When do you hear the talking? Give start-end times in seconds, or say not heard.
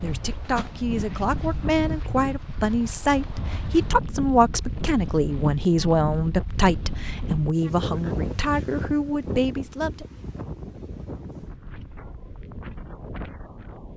0.0-10.1.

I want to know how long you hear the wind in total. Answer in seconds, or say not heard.
14 s.